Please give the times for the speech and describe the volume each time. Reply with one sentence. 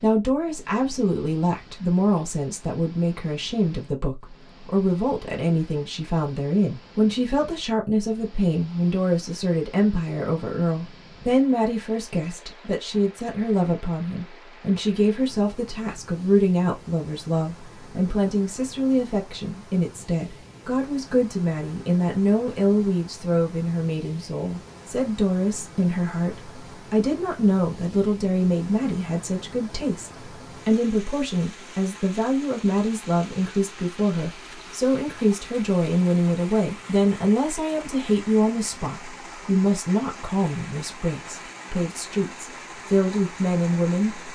The speech can be heard from 0.0 to 44.3 s, at a steady volume.